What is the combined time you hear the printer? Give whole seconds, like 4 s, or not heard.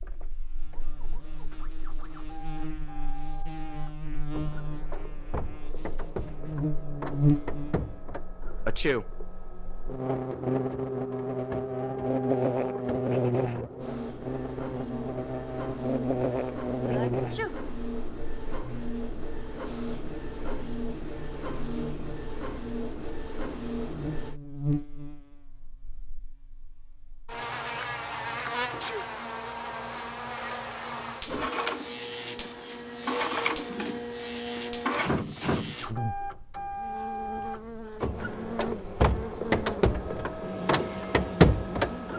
35 s.